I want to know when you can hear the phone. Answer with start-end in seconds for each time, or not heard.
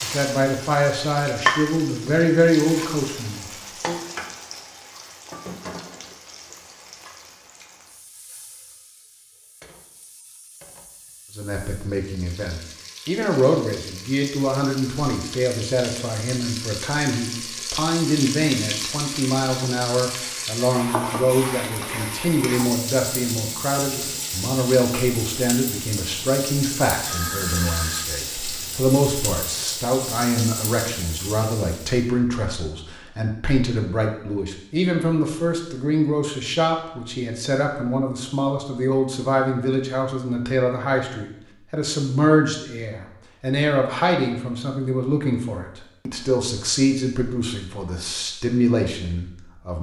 27.1-28.1.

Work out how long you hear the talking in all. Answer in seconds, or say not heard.
42 s.